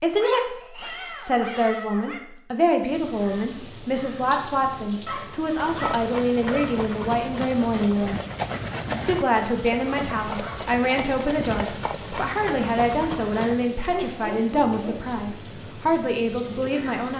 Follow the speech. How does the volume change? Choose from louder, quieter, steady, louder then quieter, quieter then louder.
steady.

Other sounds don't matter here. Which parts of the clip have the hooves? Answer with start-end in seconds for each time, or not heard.
5.5-13.7.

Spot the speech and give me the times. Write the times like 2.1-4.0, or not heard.
0.0-8.2, 9.1-17.1.